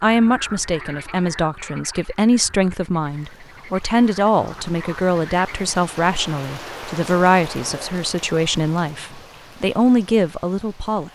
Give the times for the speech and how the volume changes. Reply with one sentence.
The speech can be heard from 0.0 to 11.1 s, at a steady volume.